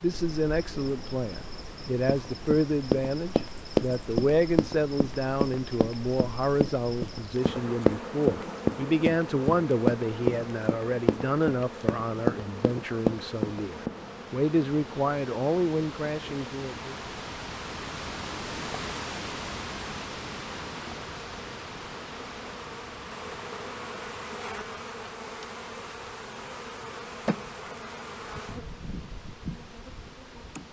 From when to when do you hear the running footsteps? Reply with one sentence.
You can hear the running footsteps from 2.0 to 13.9 s.